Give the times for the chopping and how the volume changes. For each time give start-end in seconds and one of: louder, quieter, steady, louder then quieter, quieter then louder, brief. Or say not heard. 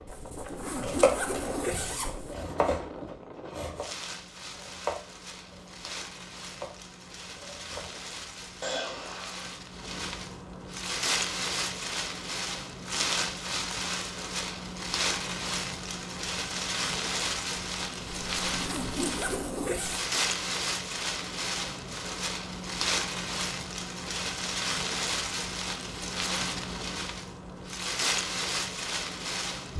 0.8-8.4 louder then quieter.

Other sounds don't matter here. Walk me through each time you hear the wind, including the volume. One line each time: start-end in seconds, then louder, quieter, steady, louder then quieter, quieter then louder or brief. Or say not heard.
0.0-29.7 louder.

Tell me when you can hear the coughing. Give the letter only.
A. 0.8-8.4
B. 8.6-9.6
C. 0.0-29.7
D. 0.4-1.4
B.